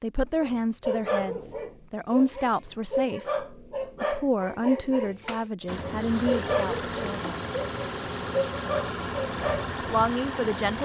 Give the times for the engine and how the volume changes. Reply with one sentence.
The engine can be heard from 5.7 to 10.7 s, at a steady volume.